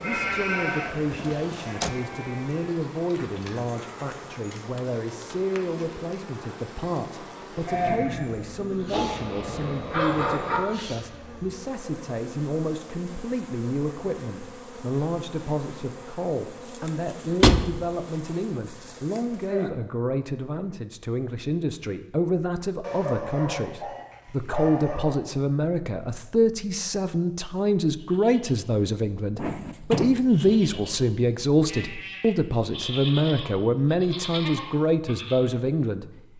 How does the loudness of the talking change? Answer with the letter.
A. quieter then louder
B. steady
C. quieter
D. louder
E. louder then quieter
D.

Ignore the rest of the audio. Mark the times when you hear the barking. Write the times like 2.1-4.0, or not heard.
8.9-10.6, 22.8-25.2.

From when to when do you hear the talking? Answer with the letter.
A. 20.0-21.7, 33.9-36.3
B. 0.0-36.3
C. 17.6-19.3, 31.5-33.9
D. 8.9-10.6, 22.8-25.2
B.